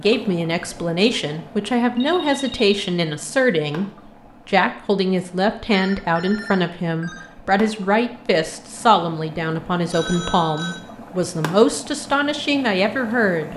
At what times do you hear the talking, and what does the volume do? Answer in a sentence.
The talking can be heard from 0.0 to 13.5 s, at a steady volume.